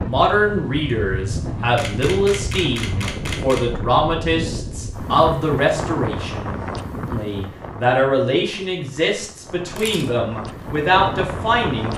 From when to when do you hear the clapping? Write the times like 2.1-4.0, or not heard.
not heard.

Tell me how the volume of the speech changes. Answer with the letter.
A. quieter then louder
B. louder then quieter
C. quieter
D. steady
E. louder
D.